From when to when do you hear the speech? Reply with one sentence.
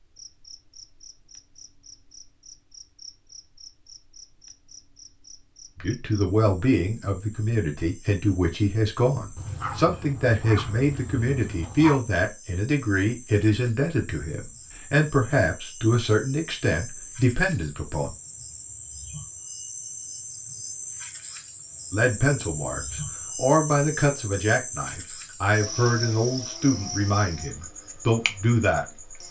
You can hear the speech from 5.8 to 18.1 s and from 21.9 to 28.9 s.